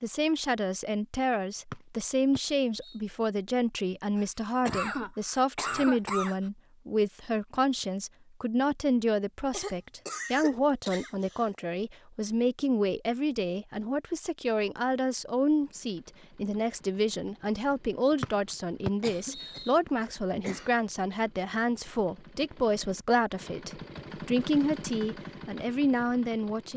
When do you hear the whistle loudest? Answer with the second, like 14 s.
19 s.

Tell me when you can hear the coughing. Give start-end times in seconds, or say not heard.
4.2-6.5, 9.5-11.5, 19.0-20.8.